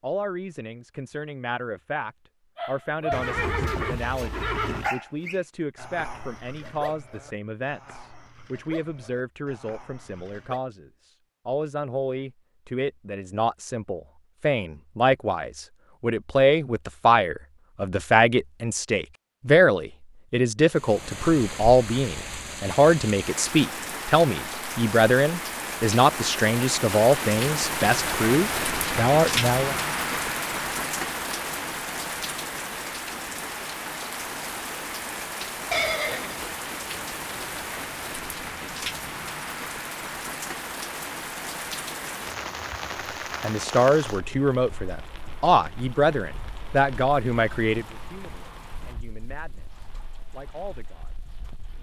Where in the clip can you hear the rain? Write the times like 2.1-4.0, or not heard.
20.6-51.7.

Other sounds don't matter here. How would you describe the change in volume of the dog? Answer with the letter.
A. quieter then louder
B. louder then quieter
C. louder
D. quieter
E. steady
D.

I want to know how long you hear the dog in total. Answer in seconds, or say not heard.
8 s.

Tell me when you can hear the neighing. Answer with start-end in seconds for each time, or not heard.
3.1-4.9, 35.7-36.5.